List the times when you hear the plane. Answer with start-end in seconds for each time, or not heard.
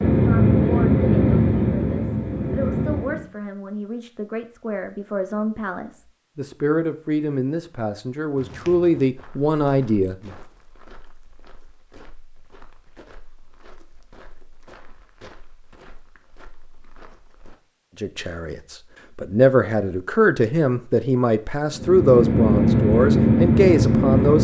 0.0-3.2, 21.7-24.4.